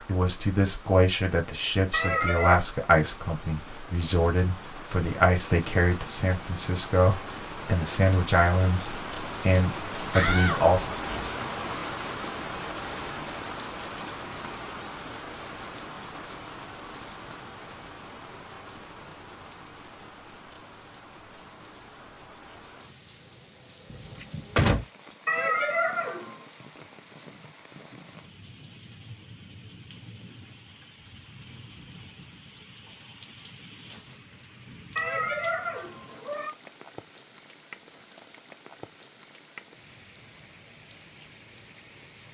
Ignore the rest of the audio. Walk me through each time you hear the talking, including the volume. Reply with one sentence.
The talking can be heard from 0.1 to 10.9 s, at a steady volume.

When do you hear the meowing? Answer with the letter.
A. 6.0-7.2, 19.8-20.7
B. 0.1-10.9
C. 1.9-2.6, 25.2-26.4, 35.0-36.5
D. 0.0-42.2
C.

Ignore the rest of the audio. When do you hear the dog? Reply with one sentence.
You can't hear the dog here.